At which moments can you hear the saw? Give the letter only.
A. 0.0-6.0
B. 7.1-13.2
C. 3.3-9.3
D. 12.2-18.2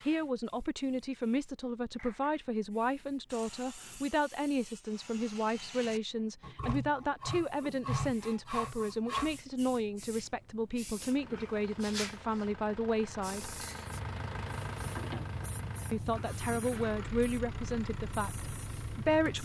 C.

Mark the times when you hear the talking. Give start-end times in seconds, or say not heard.
0.1-13.6, 15.9-19.3.